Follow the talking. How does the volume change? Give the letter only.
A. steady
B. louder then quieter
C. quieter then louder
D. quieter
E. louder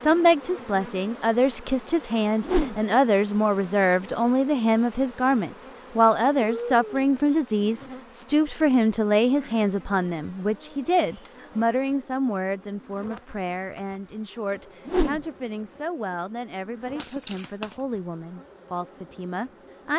D.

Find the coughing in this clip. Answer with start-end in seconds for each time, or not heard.
6.4-7.1, 17.0-17.8.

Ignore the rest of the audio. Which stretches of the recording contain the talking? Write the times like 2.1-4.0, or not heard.
0.0-19.9.